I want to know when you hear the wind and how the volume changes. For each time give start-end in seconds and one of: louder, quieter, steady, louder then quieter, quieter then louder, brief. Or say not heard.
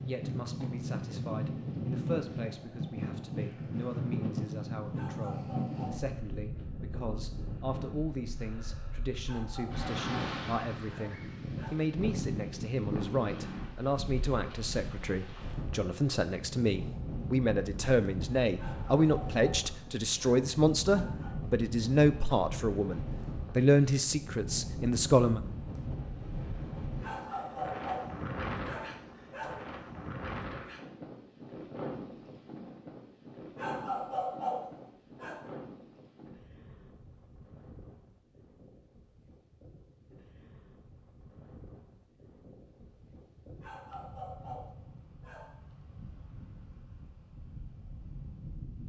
0.0-48.8 quieter.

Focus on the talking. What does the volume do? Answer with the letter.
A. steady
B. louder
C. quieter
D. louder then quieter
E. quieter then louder
B.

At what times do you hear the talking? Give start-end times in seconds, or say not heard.
0.1-25.4.